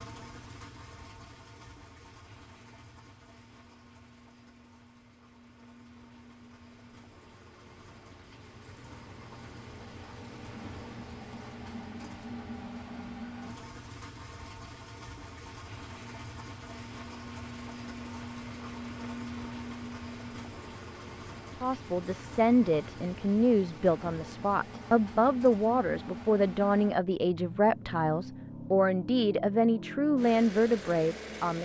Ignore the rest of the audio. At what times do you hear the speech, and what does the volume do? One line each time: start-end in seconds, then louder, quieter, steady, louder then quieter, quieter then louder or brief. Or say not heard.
21.6-31.6 steady.